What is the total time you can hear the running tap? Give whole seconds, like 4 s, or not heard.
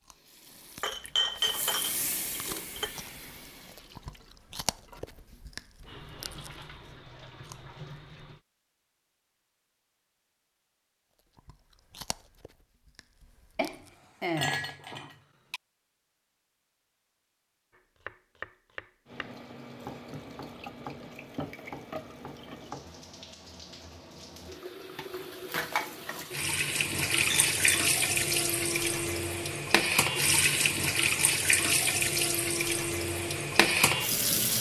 24 s.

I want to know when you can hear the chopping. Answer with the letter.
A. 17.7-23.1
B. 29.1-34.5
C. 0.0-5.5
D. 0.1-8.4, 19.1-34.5
A.